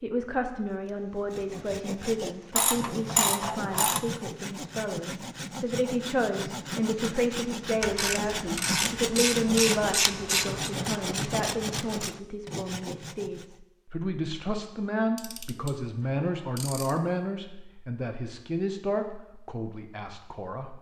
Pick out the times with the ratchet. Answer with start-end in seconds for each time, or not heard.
2.5-4.0, 7.8-10.7, 15.2-17.2.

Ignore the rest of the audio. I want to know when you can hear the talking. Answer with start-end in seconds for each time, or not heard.
0.0-20.7.